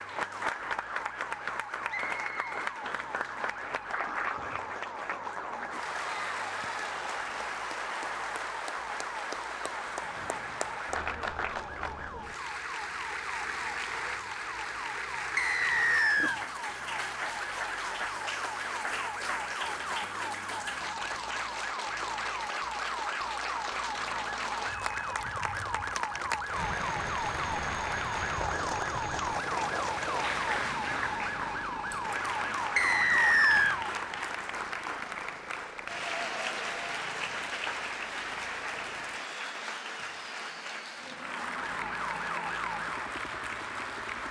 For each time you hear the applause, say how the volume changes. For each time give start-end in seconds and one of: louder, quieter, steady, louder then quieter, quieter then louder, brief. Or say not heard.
0.0-44.2 steady.